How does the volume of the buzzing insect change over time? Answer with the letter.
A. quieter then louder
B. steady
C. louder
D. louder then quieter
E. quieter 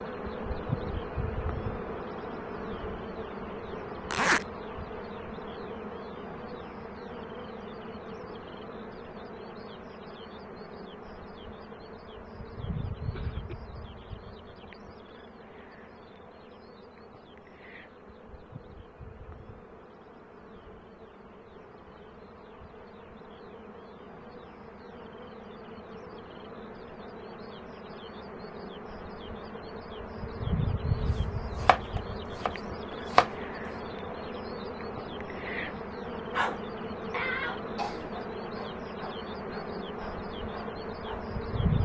A.